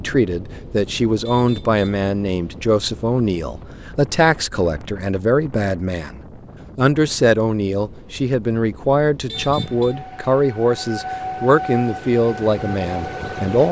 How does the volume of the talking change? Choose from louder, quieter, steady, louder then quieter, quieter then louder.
steady.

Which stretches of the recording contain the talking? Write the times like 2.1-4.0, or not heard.
0.0-13.6.